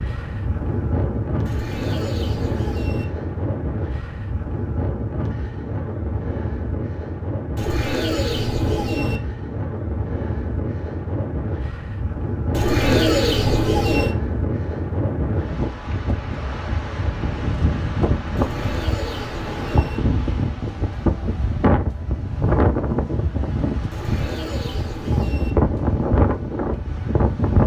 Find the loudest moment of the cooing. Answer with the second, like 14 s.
13 s.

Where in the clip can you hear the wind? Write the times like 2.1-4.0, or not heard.
0.0-27.6.